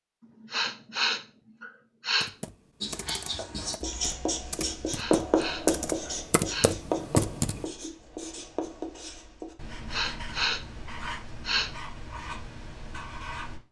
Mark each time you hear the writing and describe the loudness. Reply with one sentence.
You can hear the writing from 2.8 to 13.6 s, getting quieter.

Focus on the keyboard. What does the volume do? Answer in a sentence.
The loudness of the keyboard goes down, then up.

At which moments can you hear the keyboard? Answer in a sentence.
You can hear the keyboard from 2.2 to 7.7 s.